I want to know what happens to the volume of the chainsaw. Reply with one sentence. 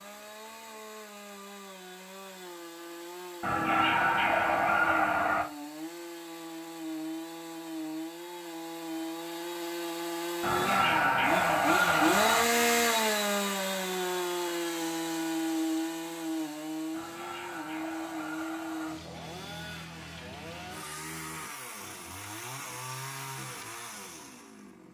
The loudness of the chainsaw goes up, then down.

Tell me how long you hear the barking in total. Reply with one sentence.
You can hear the barking for 6 seconds altogether.